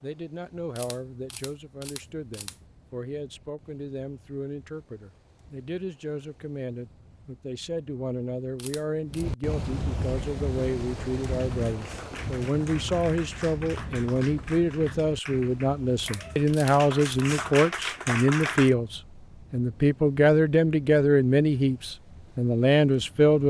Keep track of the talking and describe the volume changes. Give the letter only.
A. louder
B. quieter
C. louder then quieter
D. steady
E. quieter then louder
A.